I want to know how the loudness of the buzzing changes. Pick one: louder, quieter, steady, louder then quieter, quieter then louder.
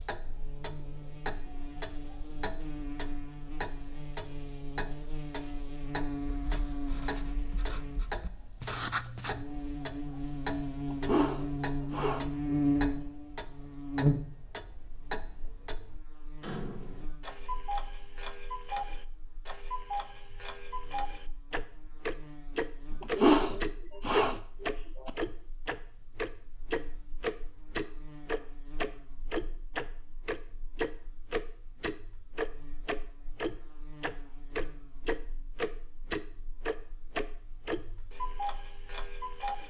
louder then quieter.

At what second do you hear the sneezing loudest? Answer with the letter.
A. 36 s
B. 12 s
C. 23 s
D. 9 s
C.